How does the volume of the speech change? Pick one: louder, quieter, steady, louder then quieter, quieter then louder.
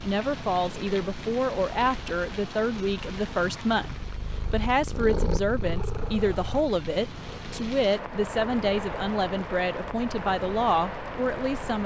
steady.